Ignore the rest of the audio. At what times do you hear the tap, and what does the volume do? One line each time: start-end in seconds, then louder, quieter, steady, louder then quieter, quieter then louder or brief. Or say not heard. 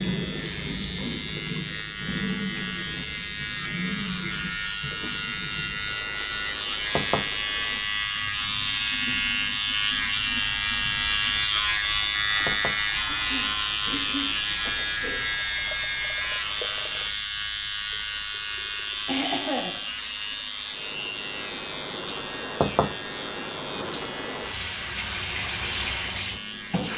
0.0-26.9 quieter then louder.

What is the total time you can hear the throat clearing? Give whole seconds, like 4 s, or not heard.
4 s.